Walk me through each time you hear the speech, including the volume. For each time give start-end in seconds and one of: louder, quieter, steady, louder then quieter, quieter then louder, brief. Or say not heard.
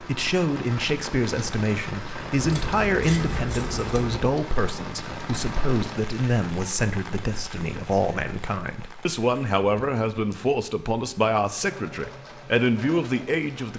0.0-13.7 steady.